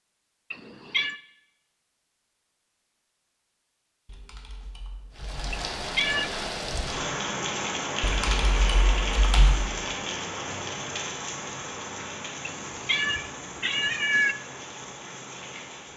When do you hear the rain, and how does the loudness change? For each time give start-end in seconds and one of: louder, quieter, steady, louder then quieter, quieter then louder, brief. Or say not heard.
5.1-15.9 quieter.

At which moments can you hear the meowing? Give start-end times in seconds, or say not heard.
0.5-1.1, 5.5-6.3, 12.4-14.3.